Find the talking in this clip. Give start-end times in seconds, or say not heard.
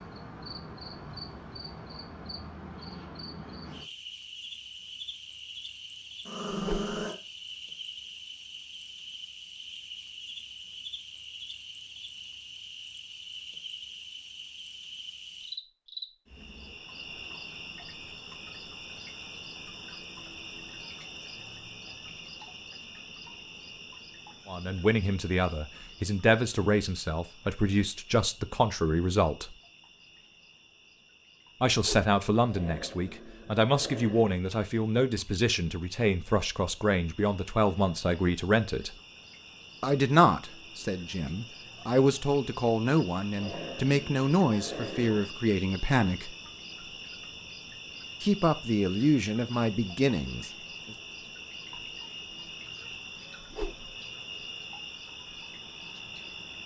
24.4-29.6, 31.6-39.0, 39.8-46.4, 48.2-50.5.